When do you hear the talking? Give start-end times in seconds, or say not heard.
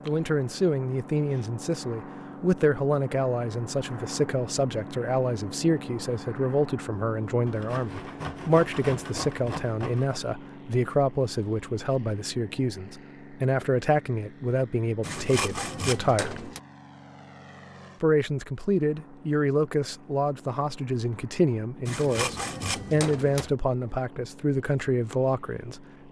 0.1-16.4, 18.0-25.8.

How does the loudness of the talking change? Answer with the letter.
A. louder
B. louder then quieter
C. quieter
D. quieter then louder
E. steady
E.